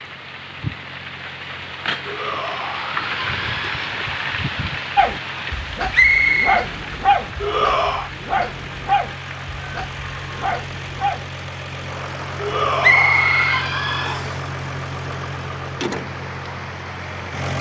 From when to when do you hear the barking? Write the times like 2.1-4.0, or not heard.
5.0-11.2.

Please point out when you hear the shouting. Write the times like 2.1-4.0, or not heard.
2.0-3.8, 7.4-8.1, 12.3-14.2.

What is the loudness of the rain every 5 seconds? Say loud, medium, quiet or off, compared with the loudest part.
loud, medium, medium, medium.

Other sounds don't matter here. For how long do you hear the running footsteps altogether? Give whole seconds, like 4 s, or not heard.
not heard.